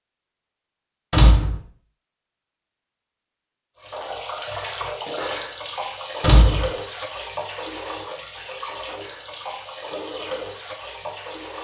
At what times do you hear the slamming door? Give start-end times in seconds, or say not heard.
1.1-1.6, 6.2-6.7.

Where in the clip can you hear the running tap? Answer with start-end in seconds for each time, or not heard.
3.8-11.5.